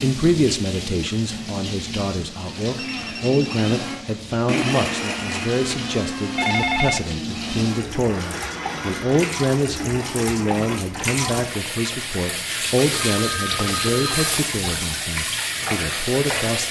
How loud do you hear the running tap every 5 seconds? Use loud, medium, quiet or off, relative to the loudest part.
medium, medium, loud, loud.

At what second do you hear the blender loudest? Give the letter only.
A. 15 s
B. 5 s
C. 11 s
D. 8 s
B.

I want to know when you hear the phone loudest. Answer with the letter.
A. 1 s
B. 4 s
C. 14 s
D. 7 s
D.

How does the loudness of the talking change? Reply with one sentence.
The loudness of the talking stays about the same.